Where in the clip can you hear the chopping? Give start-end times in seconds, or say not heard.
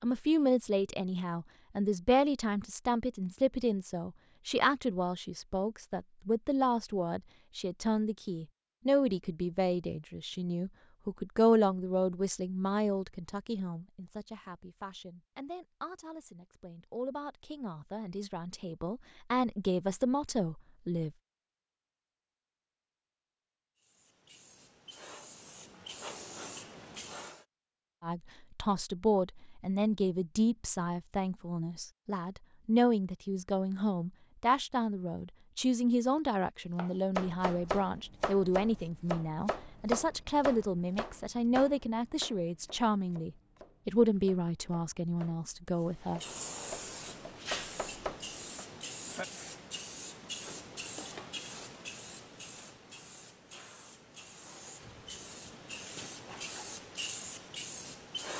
36.8-48.6.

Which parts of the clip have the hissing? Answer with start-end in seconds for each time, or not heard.
23.8-27.4, 45.8-58.3.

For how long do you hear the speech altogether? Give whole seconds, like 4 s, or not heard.
39 s.